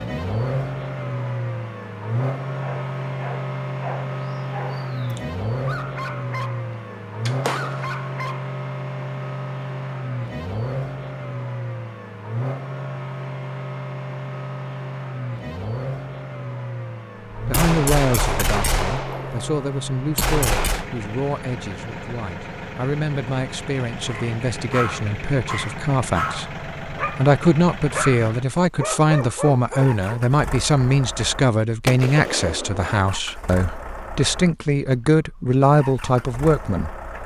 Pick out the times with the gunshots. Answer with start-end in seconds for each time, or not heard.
7.2-8.0, 17.4-20.9, 31.9-32.9.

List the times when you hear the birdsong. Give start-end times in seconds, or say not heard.
not heard.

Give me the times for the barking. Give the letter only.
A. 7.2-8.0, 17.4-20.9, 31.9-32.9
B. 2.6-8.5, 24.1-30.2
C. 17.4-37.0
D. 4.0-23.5
B.